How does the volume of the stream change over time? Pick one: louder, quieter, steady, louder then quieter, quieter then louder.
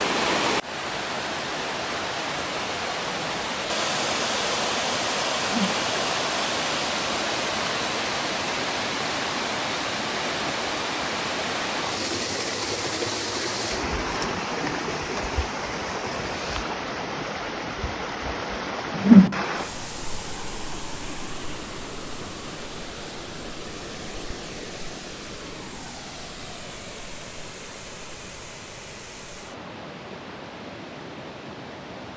quieter.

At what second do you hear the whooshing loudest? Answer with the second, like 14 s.
19 s.